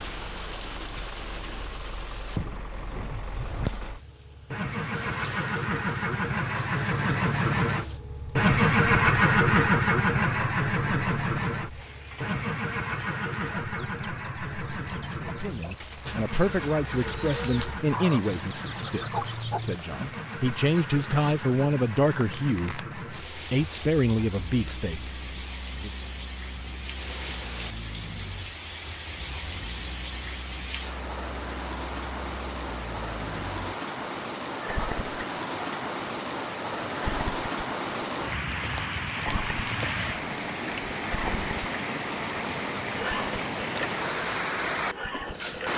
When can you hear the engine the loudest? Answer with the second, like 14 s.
9 s.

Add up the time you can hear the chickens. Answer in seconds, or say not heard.
6 s.